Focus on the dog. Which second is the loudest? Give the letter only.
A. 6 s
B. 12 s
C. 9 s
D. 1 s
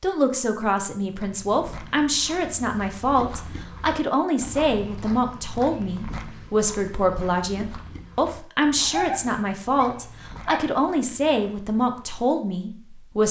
C.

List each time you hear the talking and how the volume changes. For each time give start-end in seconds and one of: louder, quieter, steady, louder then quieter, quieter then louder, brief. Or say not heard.
0.0-13.2 steady.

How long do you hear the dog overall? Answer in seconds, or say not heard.
2 s.